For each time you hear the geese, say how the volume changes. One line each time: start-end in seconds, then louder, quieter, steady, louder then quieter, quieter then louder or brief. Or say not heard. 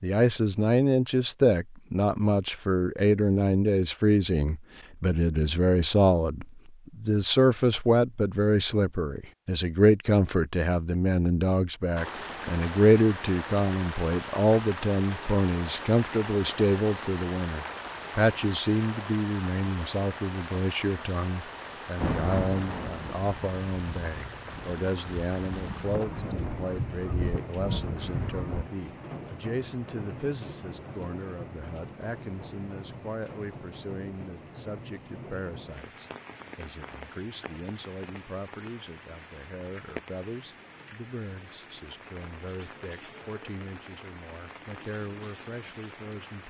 21.9-28.6 quieter then louder.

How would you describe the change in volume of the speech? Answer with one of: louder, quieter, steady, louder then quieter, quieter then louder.
quieter.